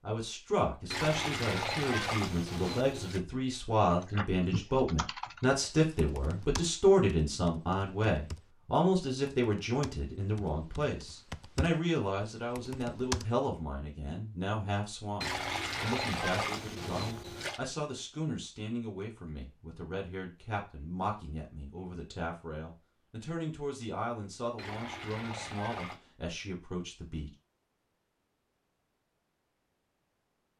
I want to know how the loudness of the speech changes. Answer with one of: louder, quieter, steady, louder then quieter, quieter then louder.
quieter.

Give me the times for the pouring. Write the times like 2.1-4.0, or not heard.
0.9-3.2, 15.2-17.6, 24.6-26.0.